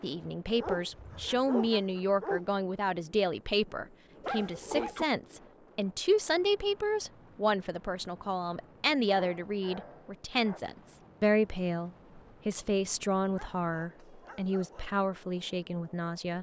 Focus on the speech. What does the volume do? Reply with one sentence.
The volume of the speech stays about the same.